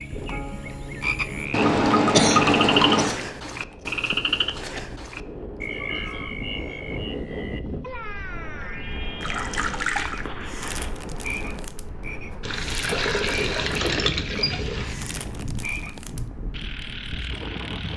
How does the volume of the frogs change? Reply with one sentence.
The loudness of the frogs goes down.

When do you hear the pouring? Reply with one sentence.
You can hear the pouring from 1.5 to 3.2 s, from 9.2 to 10.2 s and from 12.4 to 15.0 s.